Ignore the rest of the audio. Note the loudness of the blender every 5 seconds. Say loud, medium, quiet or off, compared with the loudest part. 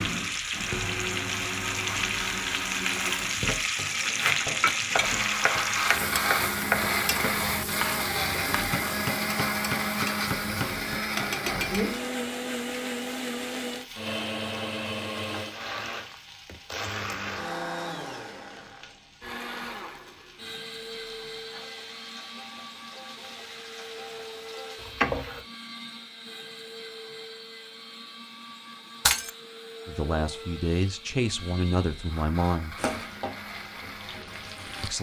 medium, loud, loud, medium, quiet, quiet, quiet.